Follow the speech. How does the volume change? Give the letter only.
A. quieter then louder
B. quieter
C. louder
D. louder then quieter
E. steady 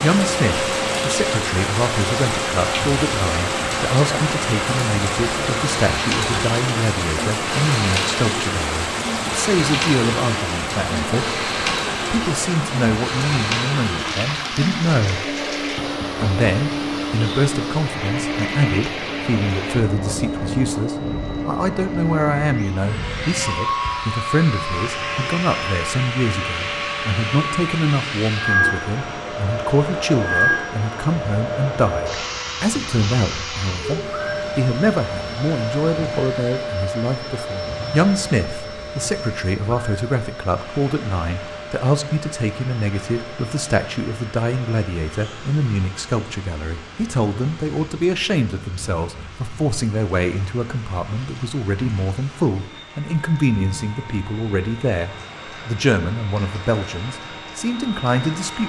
E.